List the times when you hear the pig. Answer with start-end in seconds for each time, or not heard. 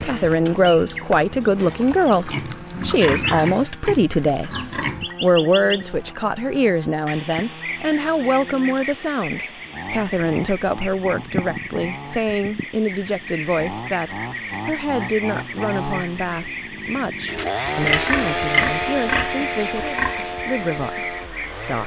2.2-5.2, 17.9-20.4.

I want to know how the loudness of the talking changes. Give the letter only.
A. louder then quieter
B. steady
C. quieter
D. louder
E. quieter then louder
C.